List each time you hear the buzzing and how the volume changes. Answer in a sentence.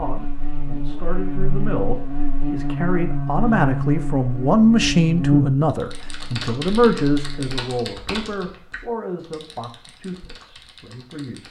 You can hear the buzzing from 0.0 to 7.5 s, getting louder then quieter.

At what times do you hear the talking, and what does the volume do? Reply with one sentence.
The talking can be heard from 0.0 to 11.4 s, getting louder then quieter.